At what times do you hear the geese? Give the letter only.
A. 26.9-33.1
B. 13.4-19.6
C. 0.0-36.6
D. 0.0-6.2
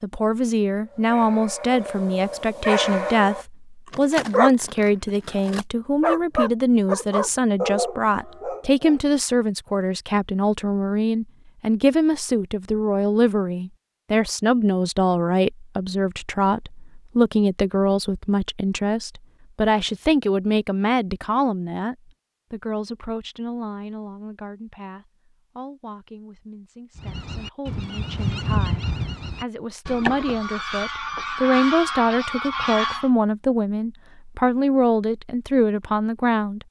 A.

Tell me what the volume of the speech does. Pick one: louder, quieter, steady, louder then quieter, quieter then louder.
quieter then louder.